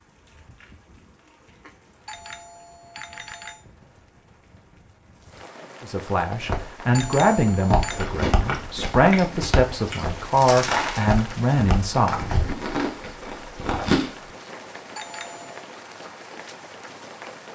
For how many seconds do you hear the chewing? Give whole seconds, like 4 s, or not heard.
6 s.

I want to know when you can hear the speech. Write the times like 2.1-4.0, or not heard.
5.8-12.2.